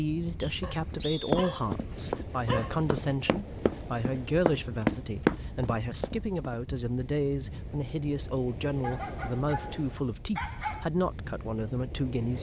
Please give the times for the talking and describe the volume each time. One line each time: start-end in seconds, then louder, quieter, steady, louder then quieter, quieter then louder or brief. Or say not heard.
0.0-12.3 steady.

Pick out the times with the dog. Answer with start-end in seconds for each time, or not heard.
0.6-2.8, 8.8-10.8.